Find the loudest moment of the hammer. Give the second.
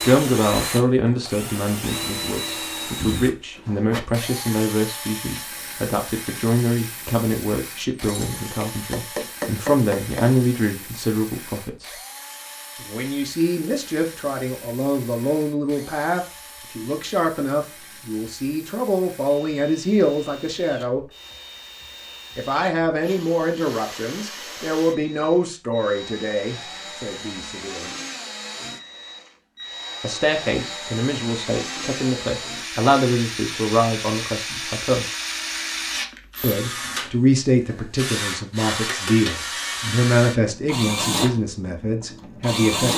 10 s.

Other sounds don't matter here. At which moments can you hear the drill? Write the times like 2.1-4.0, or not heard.
0.0-42.9.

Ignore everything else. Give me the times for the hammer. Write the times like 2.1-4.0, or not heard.
8.0-10.2.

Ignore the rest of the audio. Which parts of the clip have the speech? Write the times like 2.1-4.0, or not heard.
0.0-11.9, 12.8-21.1, 22.4-27.9, 30.0-35.0, 36.4-42.9.